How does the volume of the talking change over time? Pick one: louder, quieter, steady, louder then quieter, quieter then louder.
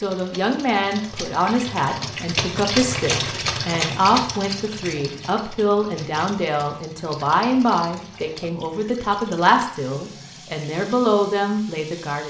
steady.